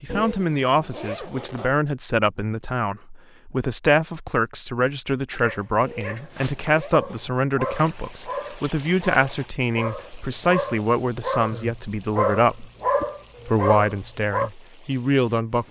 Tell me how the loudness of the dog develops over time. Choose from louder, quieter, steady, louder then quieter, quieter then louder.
louder.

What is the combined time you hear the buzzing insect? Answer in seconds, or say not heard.
not heard.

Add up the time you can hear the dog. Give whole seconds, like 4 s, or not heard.
10 s.